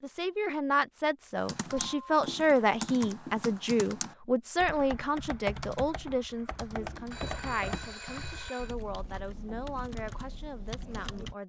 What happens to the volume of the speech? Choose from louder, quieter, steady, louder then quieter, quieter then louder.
quieter.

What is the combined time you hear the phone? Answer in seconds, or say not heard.
2 s.